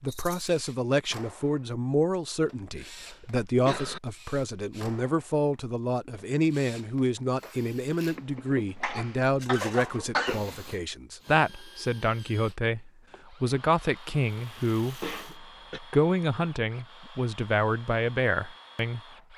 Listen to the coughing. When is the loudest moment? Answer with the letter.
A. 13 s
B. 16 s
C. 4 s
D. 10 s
D.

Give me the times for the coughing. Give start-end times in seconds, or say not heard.
2.8-4.0, 8.2-10.7, 14.6-15.8.